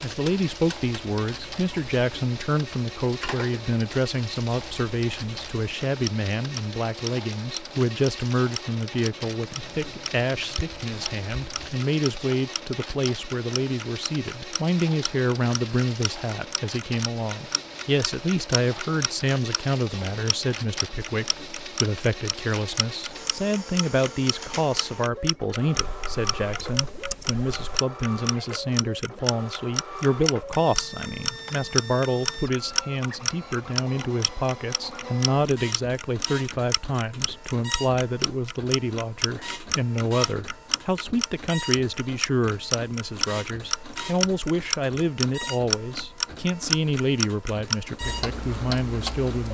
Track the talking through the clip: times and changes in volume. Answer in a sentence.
You can hear the talking from 0.0 to 49.5 s, at a steady volume.